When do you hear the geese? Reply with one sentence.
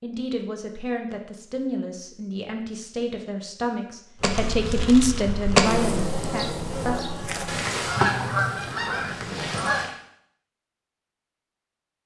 You can hear the geese from 7.5 to 9.9 s.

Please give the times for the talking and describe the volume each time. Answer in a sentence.
You can hear the talking from 0.0 to 6.5 s, getting louder.